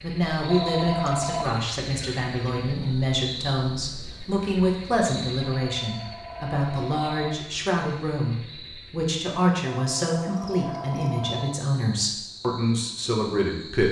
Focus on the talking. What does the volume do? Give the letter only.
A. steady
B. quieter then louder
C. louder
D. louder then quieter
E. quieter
A.